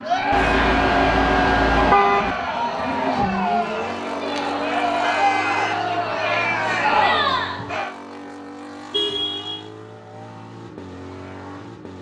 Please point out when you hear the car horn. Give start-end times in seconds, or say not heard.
0.3-2.4, 4.3-5.8, 8.9-9.7.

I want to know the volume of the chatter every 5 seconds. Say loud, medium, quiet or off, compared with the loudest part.
loud, loud, off.